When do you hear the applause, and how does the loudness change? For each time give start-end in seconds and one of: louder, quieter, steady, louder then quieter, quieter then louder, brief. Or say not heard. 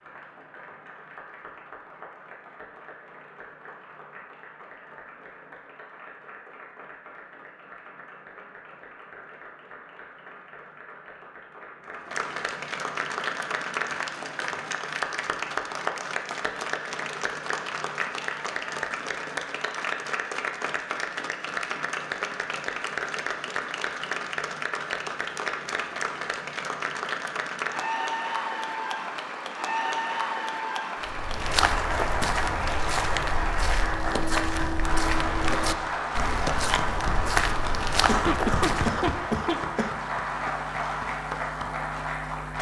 0.0-42.5 louder.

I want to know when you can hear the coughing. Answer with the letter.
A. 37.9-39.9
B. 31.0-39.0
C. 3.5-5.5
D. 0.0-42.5
A.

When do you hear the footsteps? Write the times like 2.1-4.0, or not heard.
31.0-39.0.